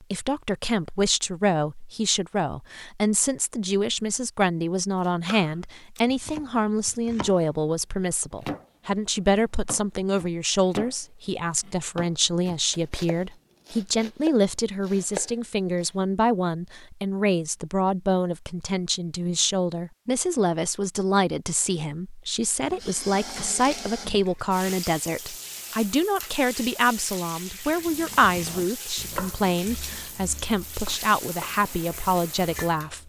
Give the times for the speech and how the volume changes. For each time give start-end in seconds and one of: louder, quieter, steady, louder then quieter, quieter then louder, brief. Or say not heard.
0.1-33.0 steady.